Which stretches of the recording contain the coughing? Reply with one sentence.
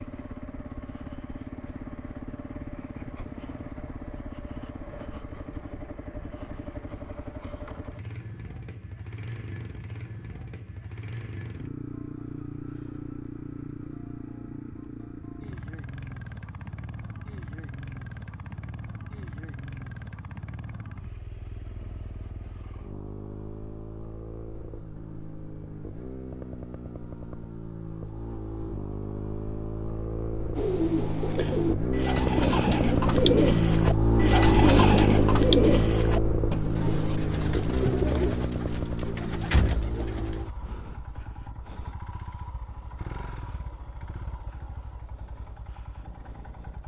The coughing can't be heard in this clip.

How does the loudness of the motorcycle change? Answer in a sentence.
The volume of the motorcycle goes up, then down.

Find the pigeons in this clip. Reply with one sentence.
You can hear the pigeons from 30.6 to 40.5 s.